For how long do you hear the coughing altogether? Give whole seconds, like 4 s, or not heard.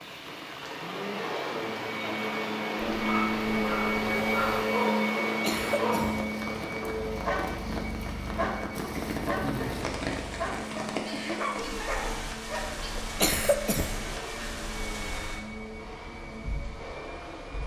2 s.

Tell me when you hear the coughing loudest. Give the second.
13 s.